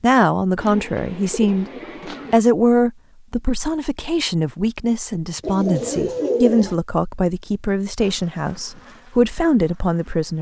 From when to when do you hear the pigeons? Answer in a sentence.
The pigeons can be heard from 0.6 to 2.4 s and from 5.4 to 6.8 s.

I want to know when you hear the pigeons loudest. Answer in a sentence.
The volume of the pigeons peaks at 6 seconds.